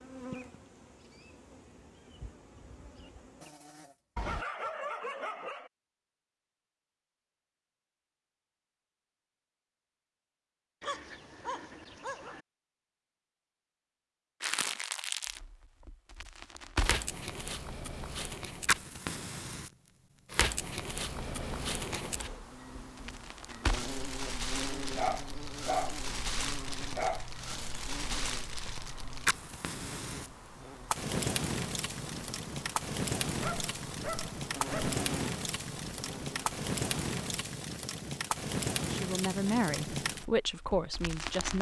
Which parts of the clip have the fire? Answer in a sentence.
The fire can be heard from 14.4 to 41.5 s.